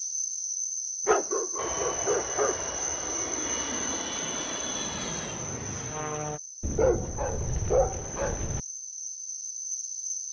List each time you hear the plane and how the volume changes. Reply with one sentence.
You can hear the plane from 1.6 to 6.4 s, at a steady volume.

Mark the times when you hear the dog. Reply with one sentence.
You can hear the dog from 1.1 to 2.5 s and from 6.6 to 8.6 s.